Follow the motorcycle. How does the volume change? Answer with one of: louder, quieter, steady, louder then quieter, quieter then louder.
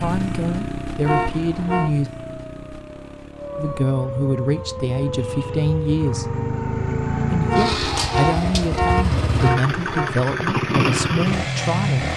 quieter then louder.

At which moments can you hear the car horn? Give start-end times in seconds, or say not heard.
1.0-1.9, 7.5-10.1.